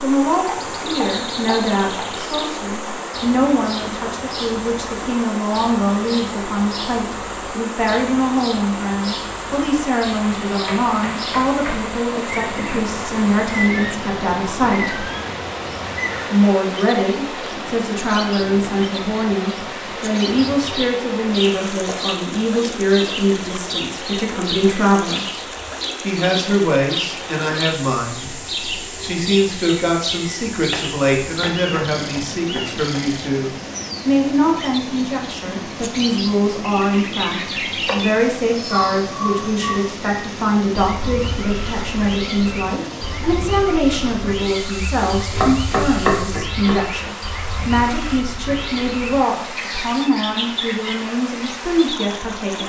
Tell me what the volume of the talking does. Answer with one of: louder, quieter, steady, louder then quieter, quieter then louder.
steady.